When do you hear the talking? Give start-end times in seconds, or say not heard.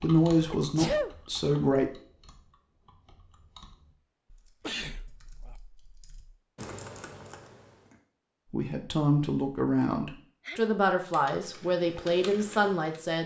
0.0-1.9, 8.5-13.2.